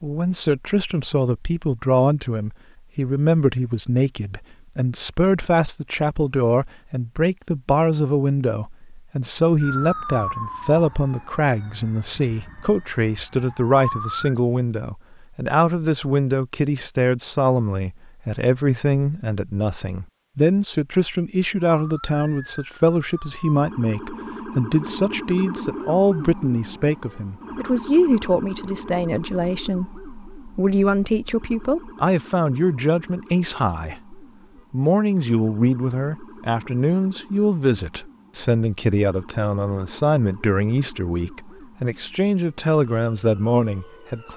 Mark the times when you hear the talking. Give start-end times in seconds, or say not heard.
0.0-44.3.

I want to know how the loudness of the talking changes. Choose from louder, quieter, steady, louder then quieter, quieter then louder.
steady.